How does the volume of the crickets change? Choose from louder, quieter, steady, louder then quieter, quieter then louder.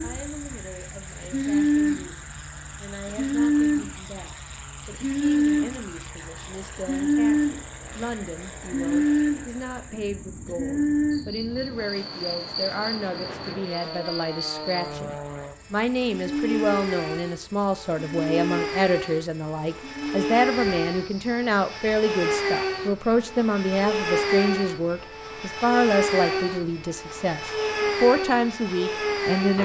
quieter.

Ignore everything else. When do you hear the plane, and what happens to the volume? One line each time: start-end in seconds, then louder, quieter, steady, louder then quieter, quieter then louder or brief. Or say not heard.
0.0-29.6 louder.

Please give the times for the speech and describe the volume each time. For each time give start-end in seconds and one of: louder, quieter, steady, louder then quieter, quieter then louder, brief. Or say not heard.
0.0-29.6 louder.